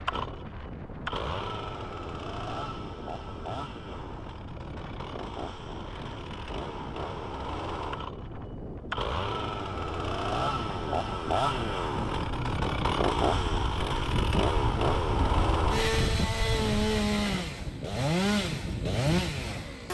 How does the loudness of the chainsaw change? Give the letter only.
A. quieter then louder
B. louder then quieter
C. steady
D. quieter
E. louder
E.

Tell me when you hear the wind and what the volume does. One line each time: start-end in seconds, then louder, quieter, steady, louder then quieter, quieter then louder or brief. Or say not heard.
0.0-19.8 louder.